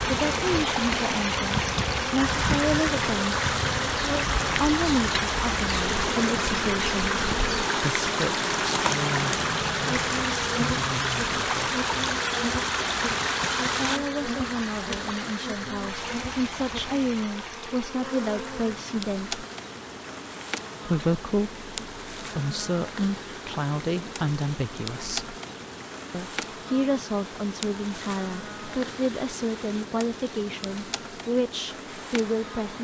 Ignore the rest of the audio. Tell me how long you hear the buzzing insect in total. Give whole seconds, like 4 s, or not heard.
33 s.